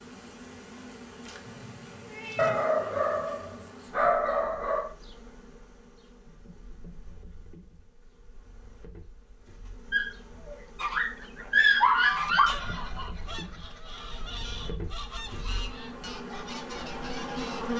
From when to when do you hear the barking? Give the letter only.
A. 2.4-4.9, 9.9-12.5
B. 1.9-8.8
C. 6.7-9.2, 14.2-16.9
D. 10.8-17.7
A.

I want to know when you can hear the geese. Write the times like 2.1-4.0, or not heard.
10.8-17.7.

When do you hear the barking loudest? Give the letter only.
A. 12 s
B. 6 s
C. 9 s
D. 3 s
A.